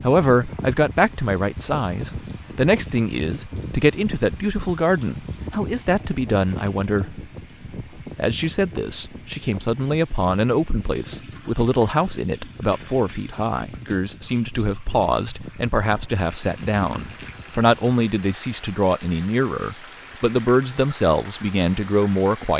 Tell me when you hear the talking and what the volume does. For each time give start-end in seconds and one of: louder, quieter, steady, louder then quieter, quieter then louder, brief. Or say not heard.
0.0-7.2 steady
8.0-22.5 steady.